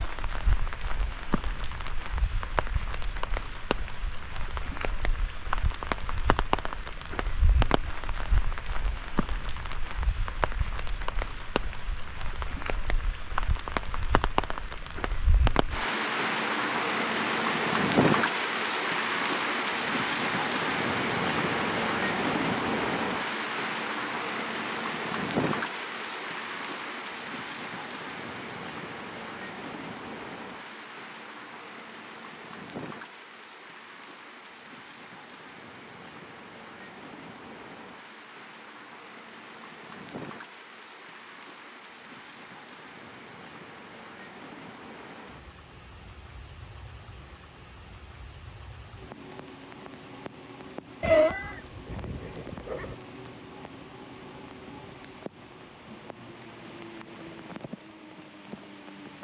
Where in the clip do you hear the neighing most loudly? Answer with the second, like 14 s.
51 s.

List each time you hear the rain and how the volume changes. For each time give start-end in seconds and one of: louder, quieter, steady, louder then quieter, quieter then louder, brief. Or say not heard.
0.0-59.1 louder then quieter.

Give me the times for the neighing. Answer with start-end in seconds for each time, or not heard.
51.0-53.0.